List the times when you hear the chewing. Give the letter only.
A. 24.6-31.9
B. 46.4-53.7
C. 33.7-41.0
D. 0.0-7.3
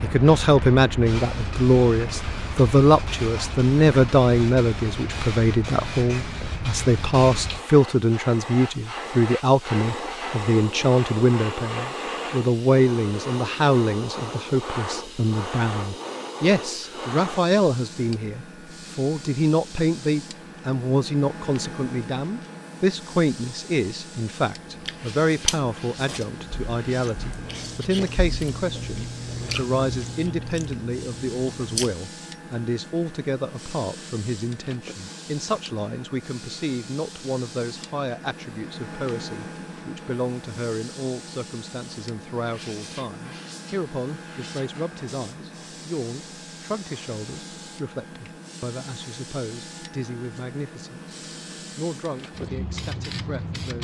A.